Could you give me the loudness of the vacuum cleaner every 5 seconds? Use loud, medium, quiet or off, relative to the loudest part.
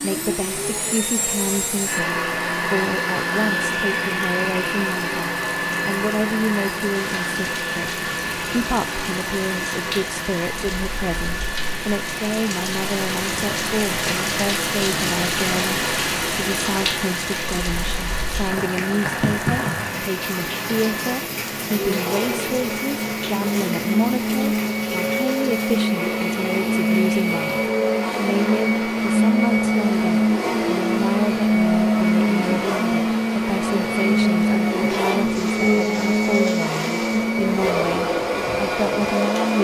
medium, medium, quiet, quiet, medium, loud, loud, loud.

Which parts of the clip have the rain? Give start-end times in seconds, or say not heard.
0.0-39.5.